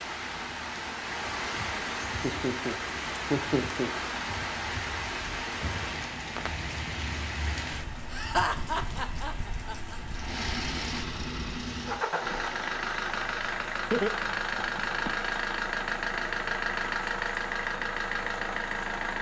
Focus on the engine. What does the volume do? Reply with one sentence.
The volume of the engine goes up.